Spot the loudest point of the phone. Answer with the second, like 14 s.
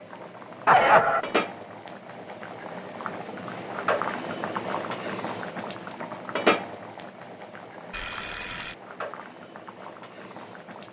1 s.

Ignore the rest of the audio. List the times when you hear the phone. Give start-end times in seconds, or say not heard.
0.7-1.2, 7.9-8.8.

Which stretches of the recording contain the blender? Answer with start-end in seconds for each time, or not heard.
not heard.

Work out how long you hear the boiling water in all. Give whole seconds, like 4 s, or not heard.
11 s.